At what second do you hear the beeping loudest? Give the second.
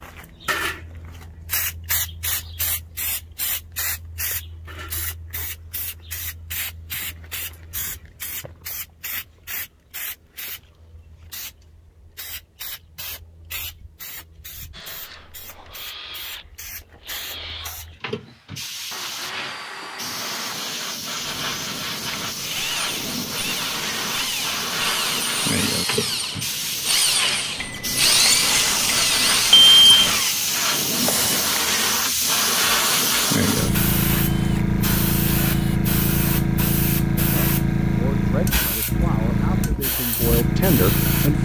30 s.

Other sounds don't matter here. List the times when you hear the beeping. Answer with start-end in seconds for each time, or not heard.
27.6-30.2.